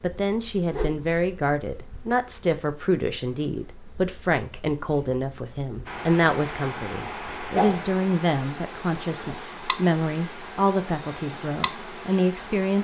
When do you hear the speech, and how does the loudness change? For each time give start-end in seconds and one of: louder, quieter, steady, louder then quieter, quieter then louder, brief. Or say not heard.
0.0-12.7 steady.